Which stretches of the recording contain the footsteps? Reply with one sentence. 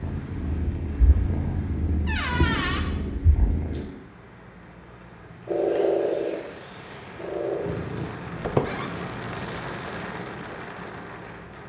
You can't hear the footsteps here.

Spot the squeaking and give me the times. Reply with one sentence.
You can hear the squeaking from 2.0 to 2.9 s and from 8.4 to 8.9 s.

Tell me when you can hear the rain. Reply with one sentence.
The rain can be heard from 0.0 to 11.6 s.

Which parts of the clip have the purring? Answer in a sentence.
The purring can be heard from 0.0 to 3.9 s and from 5.5 to 9.1 s.